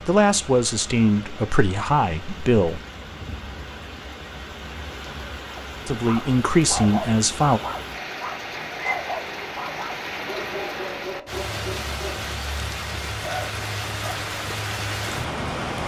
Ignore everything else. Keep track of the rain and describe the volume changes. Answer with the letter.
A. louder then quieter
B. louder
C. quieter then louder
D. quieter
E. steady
B.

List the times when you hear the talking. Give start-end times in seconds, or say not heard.
0.1-2.8, 5.8-7.6.